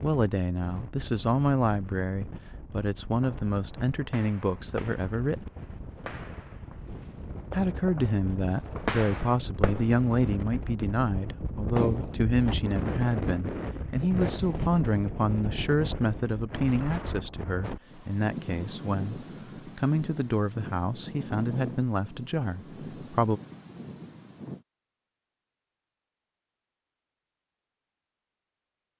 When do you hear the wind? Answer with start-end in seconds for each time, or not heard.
0.0-24.6.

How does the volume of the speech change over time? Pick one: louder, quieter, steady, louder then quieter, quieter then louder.
steady.